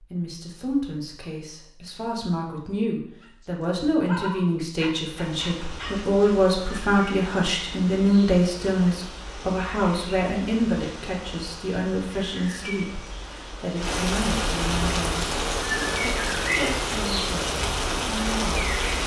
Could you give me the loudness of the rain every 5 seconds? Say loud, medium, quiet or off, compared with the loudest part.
off, quiet, medium, loud.